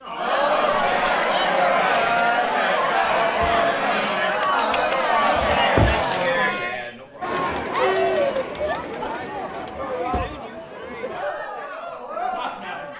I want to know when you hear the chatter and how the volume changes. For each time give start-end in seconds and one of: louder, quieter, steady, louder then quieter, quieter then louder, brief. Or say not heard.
0.0-12.9 quieter.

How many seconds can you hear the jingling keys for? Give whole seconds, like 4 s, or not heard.
4 s.